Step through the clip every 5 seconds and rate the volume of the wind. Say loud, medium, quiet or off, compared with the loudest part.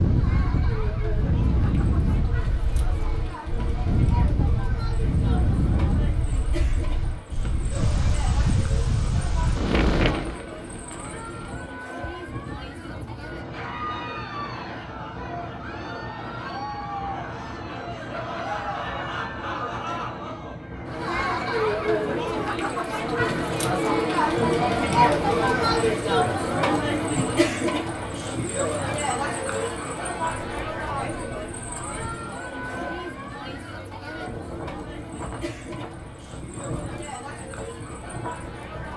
loud, loud, medium, medium, medium, medium, quiet, medium.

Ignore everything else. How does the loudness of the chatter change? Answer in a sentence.
The volume of the chatter goes up, then down.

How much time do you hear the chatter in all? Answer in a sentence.
The chatter can be heard for 39 seconds in total.